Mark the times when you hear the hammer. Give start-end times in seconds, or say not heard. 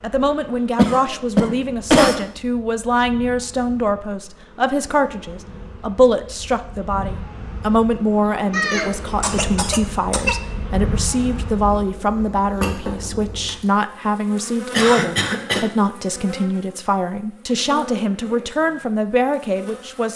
not heard.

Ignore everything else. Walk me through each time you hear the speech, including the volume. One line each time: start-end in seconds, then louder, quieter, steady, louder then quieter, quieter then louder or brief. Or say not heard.
0.0-20.1 steady.